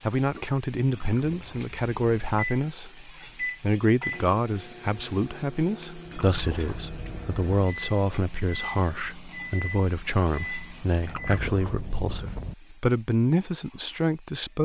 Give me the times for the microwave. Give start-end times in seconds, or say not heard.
2.3-11.4.